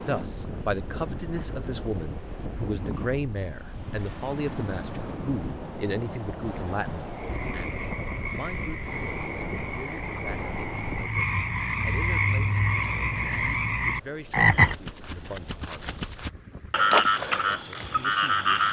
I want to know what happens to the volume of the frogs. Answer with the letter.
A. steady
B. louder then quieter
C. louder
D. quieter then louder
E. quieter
C.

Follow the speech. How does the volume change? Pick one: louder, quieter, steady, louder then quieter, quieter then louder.
quieter.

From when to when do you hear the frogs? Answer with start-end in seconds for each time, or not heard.
7.1-18.6.